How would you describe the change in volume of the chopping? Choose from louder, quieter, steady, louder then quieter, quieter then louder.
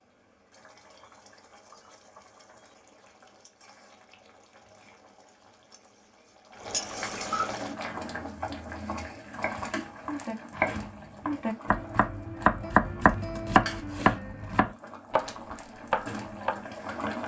louder then quieter.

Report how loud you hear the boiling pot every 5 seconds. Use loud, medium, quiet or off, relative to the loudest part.
quiet, loud, medium, loud.